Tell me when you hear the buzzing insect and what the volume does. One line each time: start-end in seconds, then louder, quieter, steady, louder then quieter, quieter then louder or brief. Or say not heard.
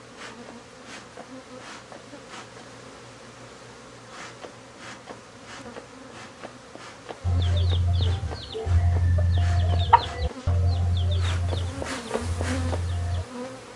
0.0-13.7 louder.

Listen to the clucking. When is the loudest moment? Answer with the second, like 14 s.
10 s.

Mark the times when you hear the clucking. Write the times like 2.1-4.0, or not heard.
7.2-13.2.